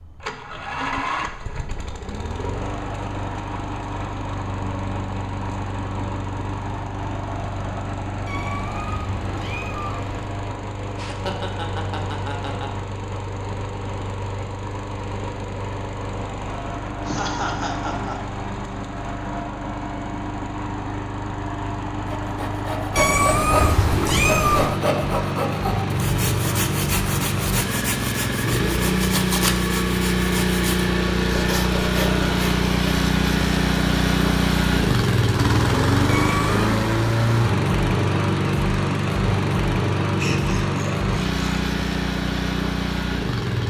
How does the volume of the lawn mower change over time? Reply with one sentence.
The volume of the lawn mower goes up.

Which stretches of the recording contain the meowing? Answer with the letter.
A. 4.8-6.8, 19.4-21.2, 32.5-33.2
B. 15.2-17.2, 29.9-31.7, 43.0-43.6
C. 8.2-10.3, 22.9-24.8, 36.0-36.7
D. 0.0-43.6
C.